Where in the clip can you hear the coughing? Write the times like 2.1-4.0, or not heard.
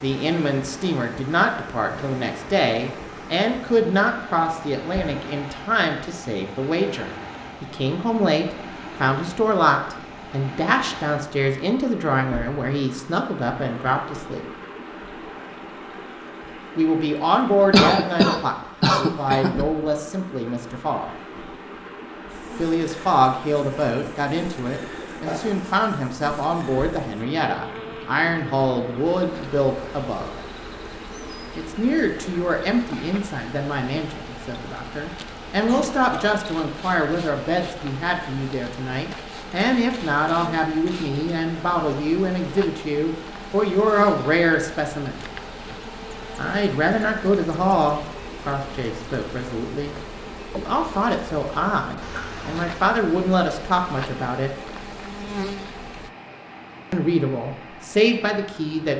17.7-19.6, 35.6-36.4.